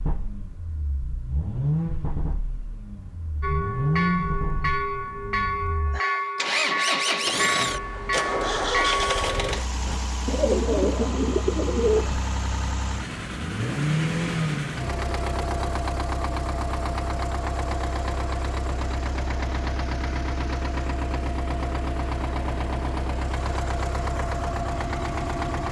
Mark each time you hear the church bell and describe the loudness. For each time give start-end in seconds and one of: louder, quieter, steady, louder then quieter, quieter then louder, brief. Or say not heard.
3.4-10.0 steady.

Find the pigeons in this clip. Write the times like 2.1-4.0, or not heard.
10.2-12.2.